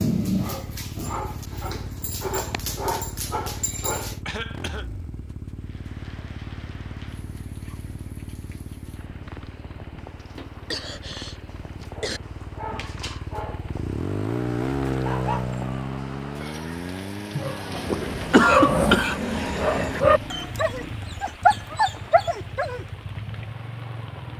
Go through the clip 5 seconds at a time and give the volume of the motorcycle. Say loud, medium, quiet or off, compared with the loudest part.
medium, medium, loud, loud, medium.